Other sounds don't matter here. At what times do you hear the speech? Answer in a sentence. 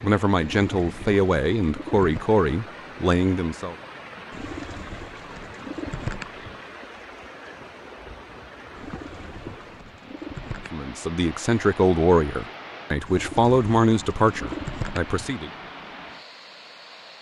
The speech can be heard from 0.0 to 3.8 s and from 10.7 to 15.5 s.